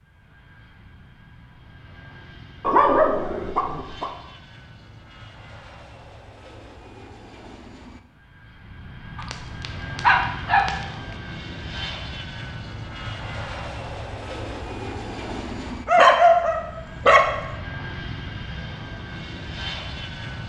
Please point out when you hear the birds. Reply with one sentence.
The birds can't be heard in this clip.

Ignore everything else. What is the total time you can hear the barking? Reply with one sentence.
You can hear the barking for 5 seconds altogether.